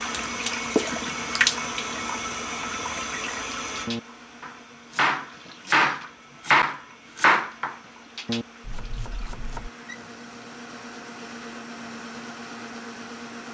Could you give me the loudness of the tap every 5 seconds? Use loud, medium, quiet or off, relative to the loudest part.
loud, quiet, quiet.